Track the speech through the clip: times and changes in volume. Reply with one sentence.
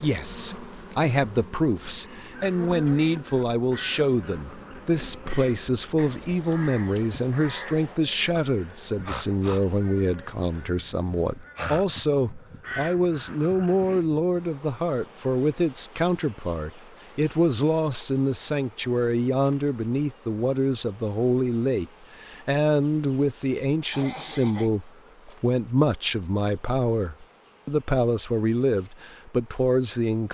The speech can be heard from 0.0 to 30.2 s, at a steady volume.